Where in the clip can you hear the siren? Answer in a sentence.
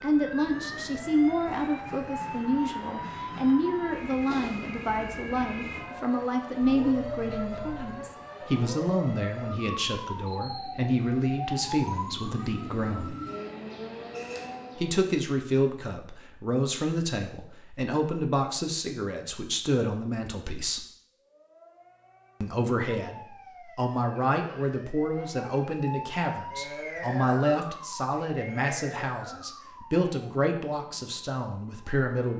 The siren can be heard from 0.0 to 15.1 s and from 21.1 to 32.3 s.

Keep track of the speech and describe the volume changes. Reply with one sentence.
The volume of the speech stays about the same.